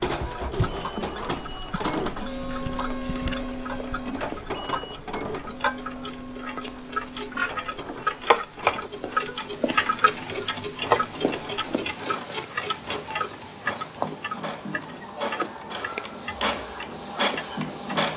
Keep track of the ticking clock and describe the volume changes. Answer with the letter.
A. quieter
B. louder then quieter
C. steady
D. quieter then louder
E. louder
B.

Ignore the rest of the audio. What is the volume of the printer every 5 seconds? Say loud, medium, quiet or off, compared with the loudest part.
loud, medium, medium, loud.